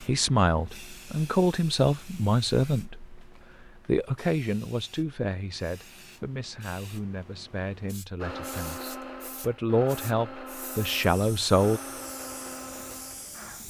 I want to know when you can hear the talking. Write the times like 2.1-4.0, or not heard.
0.0-11.8.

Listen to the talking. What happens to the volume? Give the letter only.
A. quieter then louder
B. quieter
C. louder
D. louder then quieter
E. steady
A.